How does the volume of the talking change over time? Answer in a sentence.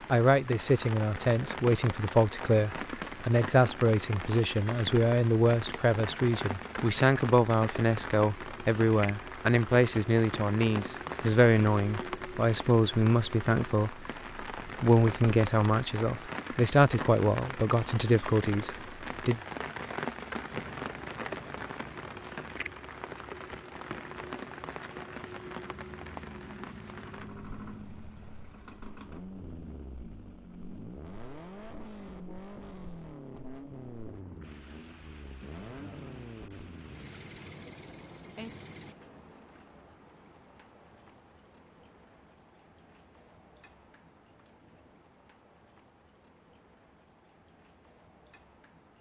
The loudness of the talking stays about the same.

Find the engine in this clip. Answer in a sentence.
You can hear the engine from 20.5 to 39.0 s.